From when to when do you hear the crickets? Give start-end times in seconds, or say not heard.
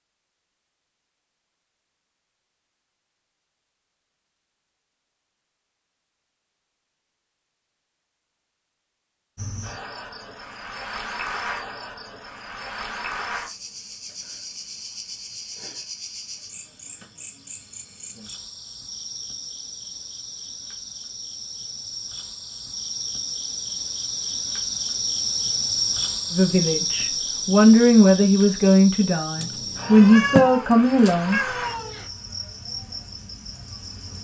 9.3-34.1.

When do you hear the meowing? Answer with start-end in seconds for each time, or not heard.
29.4-32.1.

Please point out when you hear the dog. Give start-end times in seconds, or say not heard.
not heard.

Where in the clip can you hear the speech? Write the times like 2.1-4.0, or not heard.
26.3-31.4.